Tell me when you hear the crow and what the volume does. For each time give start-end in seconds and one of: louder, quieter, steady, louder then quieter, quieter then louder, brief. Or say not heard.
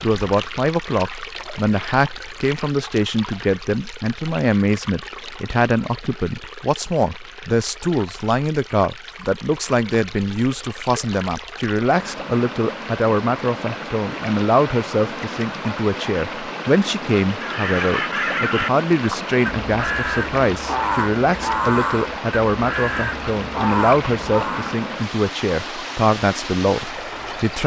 17.4-24.8 steady.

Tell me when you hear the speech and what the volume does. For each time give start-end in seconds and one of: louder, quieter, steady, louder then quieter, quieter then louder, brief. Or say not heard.
0.0-27.6 steady.